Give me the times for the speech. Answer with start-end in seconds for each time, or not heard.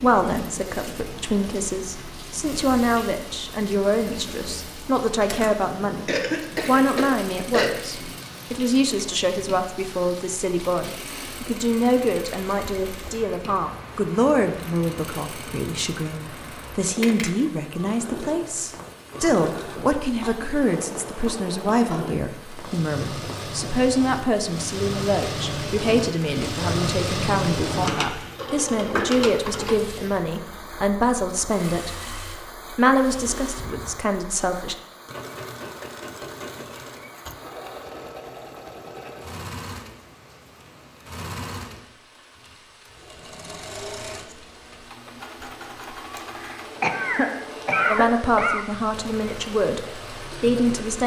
0.0-31.9, 32.7-34.8, 47.9-51.0.